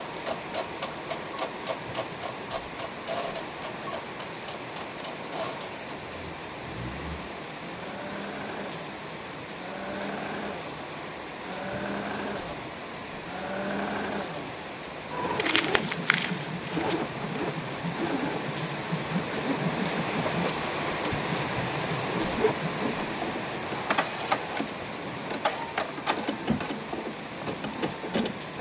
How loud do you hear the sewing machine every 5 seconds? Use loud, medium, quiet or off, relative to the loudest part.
medium, medium, loud, loud, loud, loud.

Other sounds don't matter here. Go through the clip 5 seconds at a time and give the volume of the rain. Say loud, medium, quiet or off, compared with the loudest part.
medium, medium, medium, loud, loud, medium.